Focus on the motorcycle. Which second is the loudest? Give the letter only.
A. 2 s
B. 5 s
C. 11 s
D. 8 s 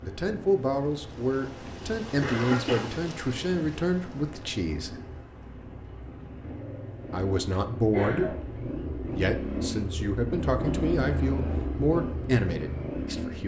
C.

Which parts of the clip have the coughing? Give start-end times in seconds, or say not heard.
2.2-2.8, 7.9-8.4.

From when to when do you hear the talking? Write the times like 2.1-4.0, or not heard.
0.0-5.0, 7.1-13.4.